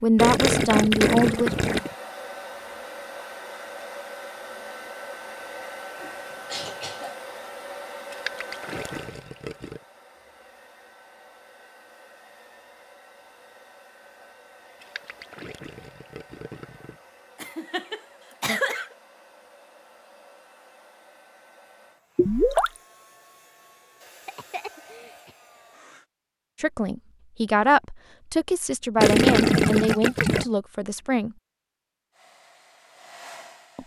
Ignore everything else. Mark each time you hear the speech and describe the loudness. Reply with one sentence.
The speech can be heard briefly from 0.0 to 1.6 s; and from 26.6 to 31.4 s, getting quieter.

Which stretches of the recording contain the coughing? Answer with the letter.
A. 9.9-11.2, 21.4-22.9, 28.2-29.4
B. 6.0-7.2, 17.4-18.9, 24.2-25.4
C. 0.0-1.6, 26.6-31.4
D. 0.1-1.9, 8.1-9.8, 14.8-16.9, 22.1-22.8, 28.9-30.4
B.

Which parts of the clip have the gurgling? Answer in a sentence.
You can hear the gurgling from 0.1 to 1.9 s, from 8.1 to 9.8 s, from 14.8 to 16.9 s, from 22.1 to 22.8 s and from 28.9 to 30.4 s.